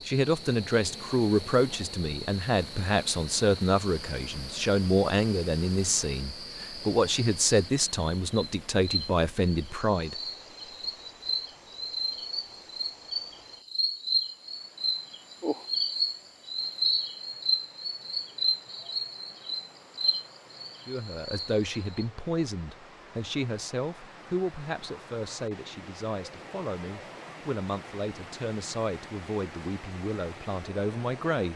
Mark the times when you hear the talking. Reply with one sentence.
You can hear the talking from 0.1 to 10.2 s and from 20.9 to 31.5 s.